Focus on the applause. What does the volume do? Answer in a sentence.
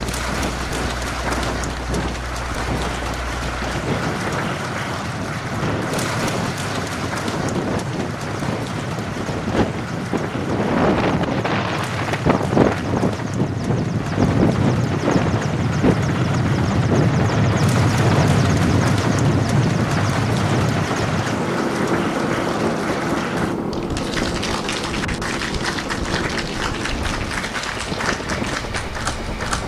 The volume of the applause goes down, then up.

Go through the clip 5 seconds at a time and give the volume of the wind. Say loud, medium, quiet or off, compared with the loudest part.
medium, medium, loud, loud, medium, medium.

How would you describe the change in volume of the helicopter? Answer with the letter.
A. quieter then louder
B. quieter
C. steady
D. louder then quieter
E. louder
D.